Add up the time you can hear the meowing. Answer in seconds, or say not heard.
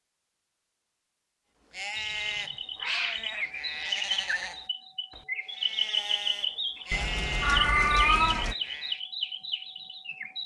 3 s.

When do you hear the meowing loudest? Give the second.
8 s.